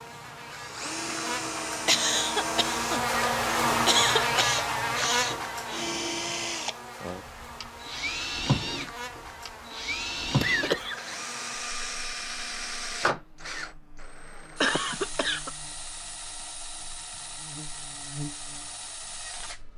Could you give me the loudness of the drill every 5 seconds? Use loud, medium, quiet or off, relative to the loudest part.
loud, loud, loud, medium.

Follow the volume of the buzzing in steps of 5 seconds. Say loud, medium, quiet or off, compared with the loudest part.
loud, medium, quiet, quiet.